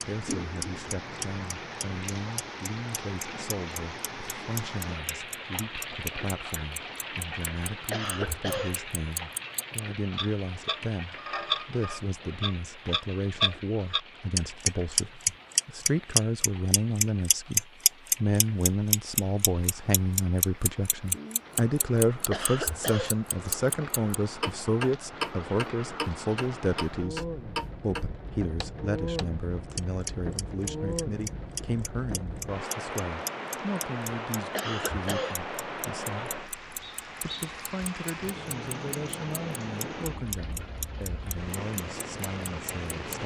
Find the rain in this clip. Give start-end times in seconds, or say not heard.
0.0-43.2.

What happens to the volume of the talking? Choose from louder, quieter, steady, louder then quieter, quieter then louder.
louder then quieter.